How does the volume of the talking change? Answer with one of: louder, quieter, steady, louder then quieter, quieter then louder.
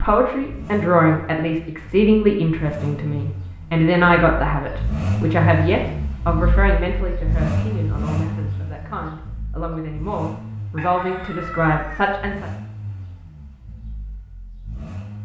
quieter then louder.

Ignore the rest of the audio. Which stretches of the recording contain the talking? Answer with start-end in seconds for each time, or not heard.
0.0-12.5.